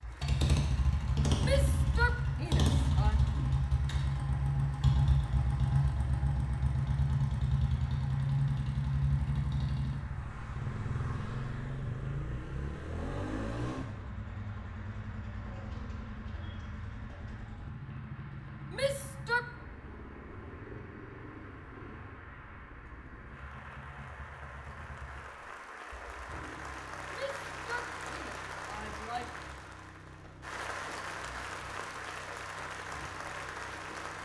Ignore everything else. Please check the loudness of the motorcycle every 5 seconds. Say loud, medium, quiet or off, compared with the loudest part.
loud, loud, medium, quiet, quiet, quiet, quiet.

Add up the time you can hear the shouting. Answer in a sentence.
You can hear the shouting for 5 seconds altogether.